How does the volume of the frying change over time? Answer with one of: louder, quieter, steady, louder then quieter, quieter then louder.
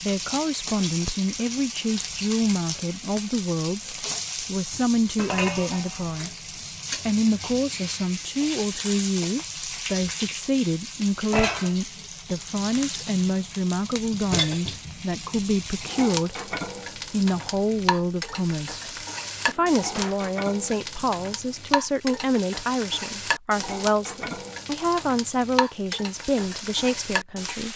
steady.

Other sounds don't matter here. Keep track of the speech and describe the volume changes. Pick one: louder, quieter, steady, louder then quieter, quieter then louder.
steady.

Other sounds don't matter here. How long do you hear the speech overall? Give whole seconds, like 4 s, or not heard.
27 s.